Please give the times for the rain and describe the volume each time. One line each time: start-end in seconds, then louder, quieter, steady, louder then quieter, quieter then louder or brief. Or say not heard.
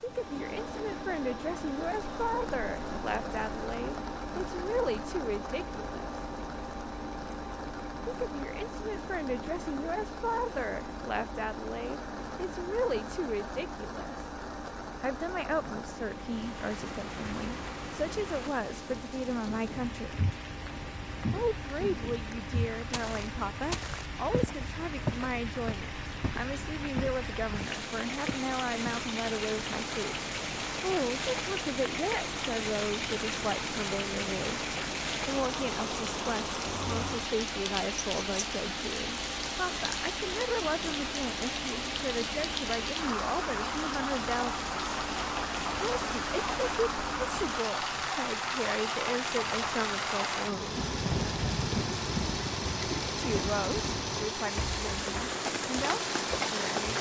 0.0-56.9 louder.